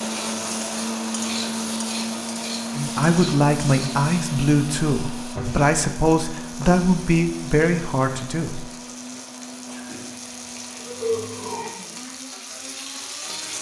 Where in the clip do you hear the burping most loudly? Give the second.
11 s.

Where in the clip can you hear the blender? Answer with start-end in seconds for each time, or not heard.
0.0-13.5.